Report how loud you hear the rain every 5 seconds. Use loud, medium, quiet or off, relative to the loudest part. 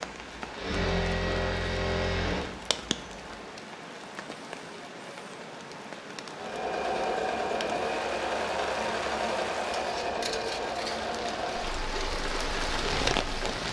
medium, medium, loud.